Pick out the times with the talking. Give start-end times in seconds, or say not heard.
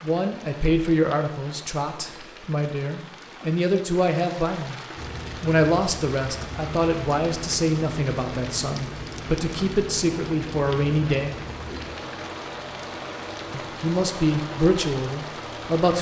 0.0-4.8, 5.4-11.3, 13.5-15.9.